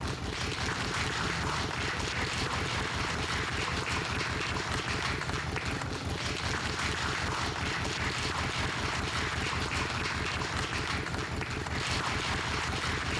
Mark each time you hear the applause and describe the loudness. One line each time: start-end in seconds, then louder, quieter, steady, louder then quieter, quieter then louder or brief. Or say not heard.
0.0-13.1 steady.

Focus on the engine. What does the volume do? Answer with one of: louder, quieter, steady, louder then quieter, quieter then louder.
steady.